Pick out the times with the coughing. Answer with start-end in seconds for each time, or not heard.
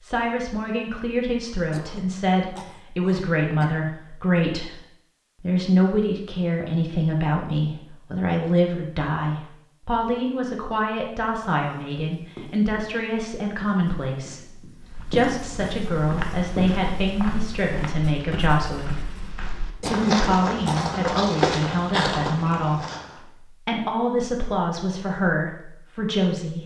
1.7-3.9, 19.8-20.9.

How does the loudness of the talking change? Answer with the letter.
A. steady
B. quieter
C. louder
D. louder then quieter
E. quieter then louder
A.